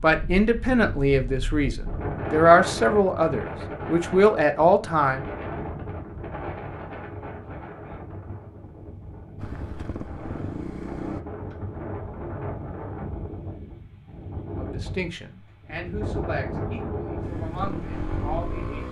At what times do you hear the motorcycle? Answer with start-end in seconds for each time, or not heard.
9.3-11.2, 17.2-18.8.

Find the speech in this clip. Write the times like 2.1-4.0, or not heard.
0.0-5.2, 14.6-18.8.